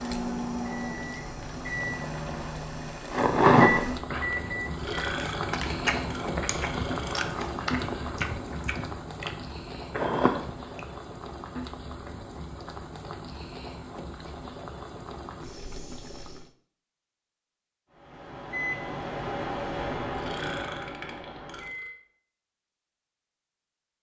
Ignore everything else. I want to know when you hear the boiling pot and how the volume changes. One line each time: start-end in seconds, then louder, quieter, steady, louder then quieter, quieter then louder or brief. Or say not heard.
0.0-16.5 louder then quieter.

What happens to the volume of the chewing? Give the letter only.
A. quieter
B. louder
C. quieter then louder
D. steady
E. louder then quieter
C.